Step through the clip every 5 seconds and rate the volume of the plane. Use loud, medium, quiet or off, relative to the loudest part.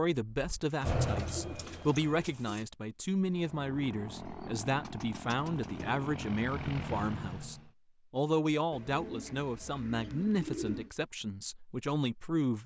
loud, loud, off.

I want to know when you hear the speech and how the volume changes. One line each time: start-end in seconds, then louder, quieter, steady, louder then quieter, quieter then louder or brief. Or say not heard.
0.0-12.6 steady.